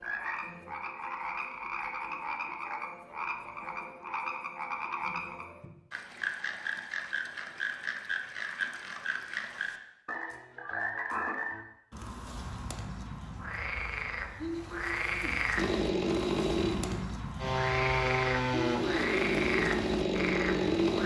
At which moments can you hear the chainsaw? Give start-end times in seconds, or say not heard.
15.6-21.0.